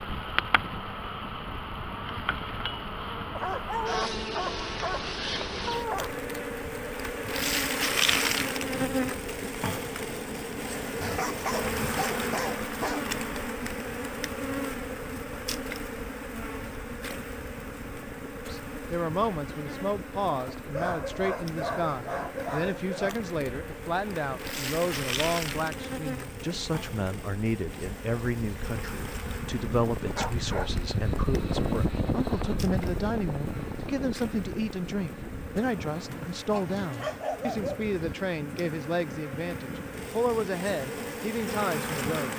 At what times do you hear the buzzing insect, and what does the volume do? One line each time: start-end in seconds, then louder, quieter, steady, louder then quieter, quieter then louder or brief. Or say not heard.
0.0-42.3 quieter.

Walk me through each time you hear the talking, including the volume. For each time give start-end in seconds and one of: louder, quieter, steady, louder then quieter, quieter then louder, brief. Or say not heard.
18.4-42.3 steady.